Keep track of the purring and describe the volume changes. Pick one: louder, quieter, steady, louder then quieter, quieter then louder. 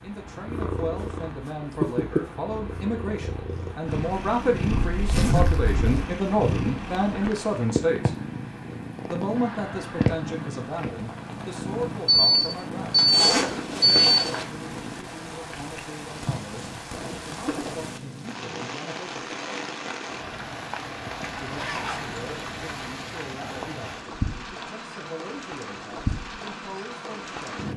quieter.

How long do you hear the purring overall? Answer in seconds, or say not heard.
19 s.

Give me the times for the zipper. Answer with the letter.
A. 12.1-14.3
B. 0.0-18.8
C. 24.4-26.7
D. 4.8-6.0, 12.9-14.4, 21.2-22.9
D.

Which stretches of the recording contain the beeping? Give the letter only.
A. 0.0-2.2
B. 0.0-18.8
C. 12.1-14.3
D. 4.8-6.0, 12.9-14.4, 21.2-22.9
C.